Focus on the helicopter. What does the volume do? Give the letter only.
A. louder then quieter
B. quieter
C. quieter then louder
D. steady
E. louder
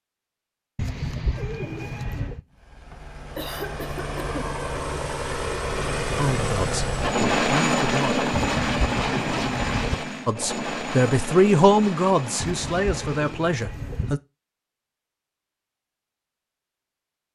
A.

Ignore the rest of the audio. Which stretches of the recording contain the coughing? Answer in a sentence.
You can hear the coughing from 2.9 to 4.5 s.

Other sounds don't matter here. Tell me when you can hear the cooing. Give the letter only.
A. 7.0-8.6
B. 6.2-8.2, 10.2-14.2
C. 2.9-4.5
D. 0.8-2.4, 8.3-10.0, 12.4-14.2
D.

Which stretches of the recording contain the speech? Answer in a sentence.
The speech can be heard from 6.2 to 8.2 s and from 10.2 to 14.2 s.